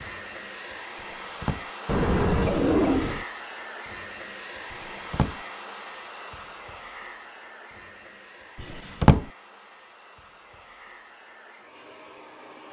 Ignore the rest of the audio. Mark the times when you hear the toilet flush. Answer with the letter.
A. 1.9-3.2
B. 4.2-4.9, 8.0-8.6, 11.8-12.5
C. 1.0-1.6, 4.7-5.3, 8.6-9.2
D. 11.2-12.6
A.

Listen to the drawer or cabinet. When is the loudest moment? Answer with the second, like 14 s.
9 s.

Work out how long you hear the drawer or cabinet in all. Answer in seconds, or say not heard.
2 s.